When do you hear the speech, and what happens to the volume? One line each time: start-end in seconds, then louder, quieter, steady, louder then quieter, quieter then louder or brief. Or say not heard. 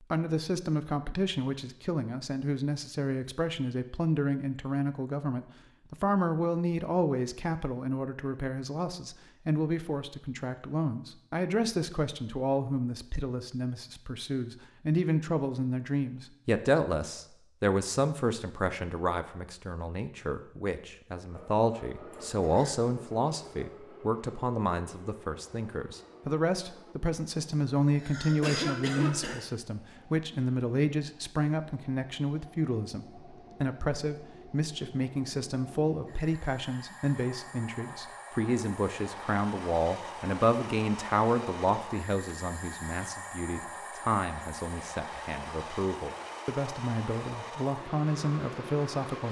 0.0-49.2 steady.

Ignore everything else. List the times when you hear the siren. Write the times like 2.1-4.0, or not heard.
not heard.